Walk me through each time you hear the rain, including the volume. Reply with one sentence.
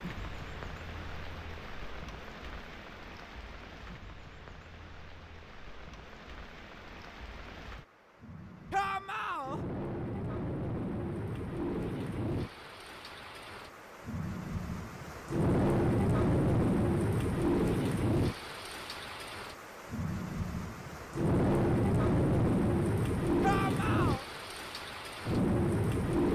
The rain can be heard from 0.0 to 26.3 s, getting louder.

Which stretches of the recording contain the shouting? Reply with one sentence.
The shouting can be heard from 8.7 to 9.6 s and from 23.4 to 24.2 s.